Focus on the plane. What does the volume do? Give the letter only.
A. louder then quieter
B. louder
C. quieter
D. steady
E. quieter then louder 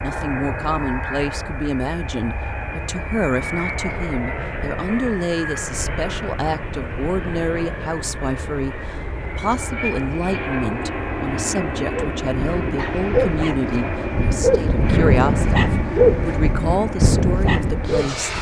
D.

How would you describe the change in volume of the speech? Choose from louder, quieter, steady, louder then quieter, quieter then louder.
steady.